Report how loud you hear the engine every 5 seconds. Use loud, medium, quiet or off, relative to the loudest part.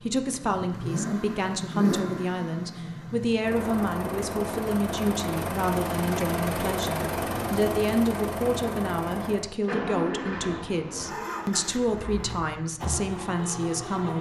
loud, loud, medium.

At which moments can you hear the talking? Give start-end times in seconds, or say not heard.
0.0-14.1.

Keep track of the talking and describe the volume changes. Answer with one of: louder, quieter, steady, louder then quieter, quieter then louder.
steady.